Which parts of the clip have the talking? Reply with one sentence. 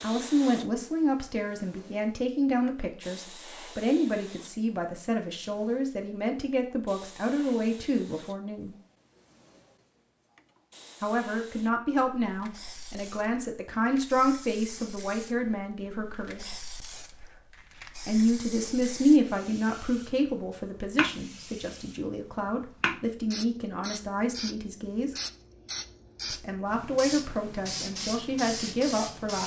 The talking can be heard from 0.0 to 8.8 s, from 11.0 to 16.5 s, from 18.1 to 25.1 s and from 26.3 to 29.4 s.